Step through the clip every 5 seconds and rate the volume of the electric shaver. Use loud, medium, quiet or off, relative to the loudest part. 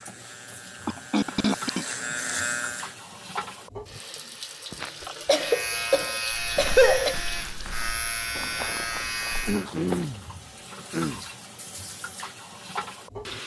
loud, loud, off.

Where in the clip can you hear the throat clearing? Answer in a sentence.
The throat clearing can be heard from 0.8 to 1.9 s, from 5.0 to 7.2 s and from 9.4 to 11.2 s.